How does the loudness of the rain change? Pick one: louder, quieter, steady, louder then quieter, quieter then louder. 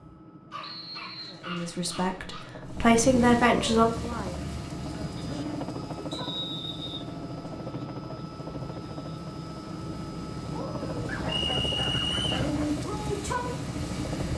quieter then louder.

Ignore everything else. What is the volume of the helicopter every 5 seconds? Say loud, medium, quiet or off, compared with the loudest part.
medium, loud, loud.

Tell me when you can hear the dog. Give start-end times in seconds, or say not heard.
0.5-2.5, 11.1-12.7.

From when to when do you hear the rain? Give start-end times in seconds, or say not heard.
2.6-14.3.